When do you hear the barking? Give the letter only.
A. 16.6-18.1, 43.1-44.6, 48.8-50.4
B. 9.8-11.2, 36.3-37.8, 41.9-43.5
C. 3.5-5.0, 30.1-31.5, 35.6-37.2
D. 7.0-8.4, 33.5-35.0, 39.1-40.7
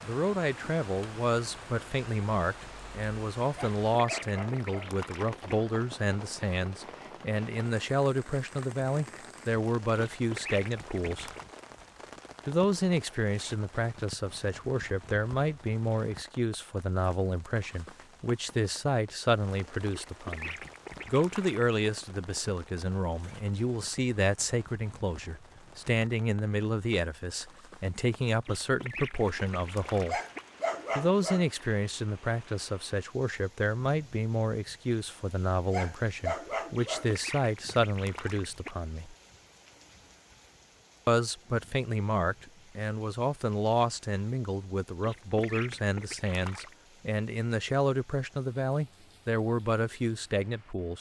C.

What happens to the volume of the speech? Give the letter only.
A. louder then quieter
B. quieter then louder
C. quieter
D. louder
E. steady
E.